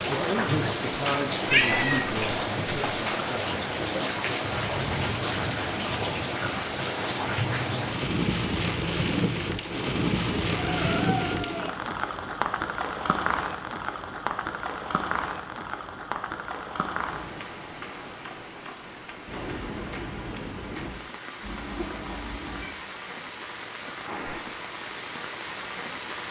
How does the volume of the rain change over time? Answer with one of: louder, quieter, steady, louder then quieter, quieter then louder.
quieter.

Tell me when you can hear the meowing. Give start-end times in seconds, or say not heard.
1.5-2.1, 9.7-11.7, 21.4-22.8.